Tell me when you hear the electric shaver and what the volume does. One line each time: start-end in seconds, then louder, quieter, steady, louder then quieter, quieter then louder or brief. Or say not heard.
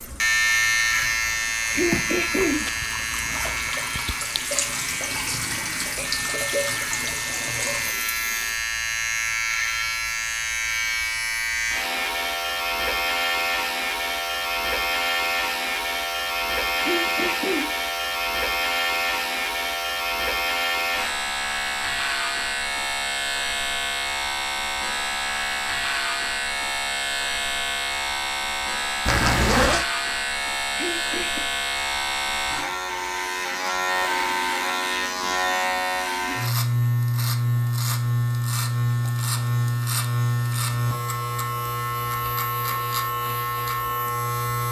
0.0-44.6 steady.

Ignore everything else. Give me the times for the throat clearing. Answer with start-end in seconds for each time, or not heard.
1.7-2.6, 16.8-17.7, 30.8-31.4.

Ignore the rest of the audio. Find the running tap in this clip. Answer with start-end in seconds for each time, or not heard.
0.0-8.7.